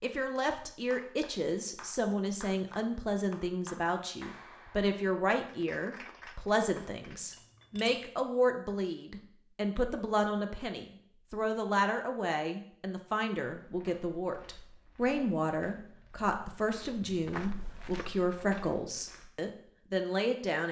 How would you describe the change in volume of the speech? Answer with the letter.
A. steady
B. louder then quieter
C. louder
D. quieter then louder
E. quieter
A.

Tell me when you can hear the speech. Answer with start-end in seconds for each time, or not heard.
0.0-20.6.